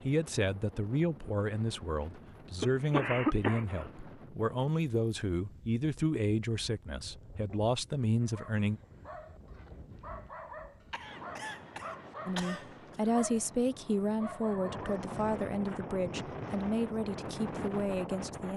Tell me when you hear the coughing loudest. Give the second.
3 s.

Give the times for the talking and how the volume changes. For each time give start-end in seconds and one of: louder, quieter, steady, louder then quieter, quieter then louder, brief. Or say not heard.
0.0-8.8 steady
12.2-18.5 quieter.